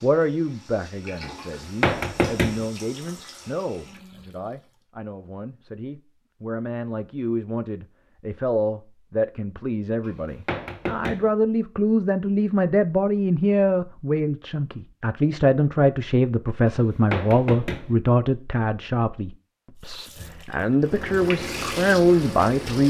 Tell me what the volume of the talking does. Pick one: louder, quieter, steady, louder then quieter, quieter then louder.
louder.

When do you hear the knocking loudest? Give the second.
2 s.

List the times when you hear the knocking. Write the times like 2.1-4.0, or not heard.
1.4-2.6, 10.1-11.3, 16.6-17.9.